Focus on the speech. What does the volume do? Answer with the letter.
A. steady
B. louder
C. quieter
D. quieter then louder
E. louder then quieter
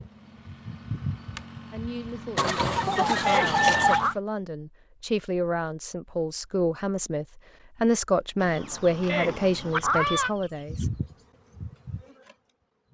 B.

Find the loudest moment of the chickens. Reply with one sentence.
The loudest moment of the chickens is at 4 seconds.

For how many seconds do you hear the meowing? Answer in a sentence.
The meowing can be heard for 2 seconds in total.